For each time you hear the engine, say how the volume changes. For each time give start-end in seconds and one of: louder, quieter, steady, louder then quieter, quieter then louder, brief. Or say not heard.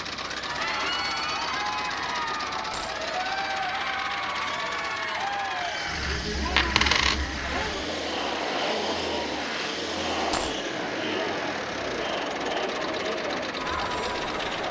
0.0-14.6 steady.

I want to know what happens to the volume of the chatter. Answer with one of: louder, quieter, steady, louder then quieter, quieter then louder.
steady.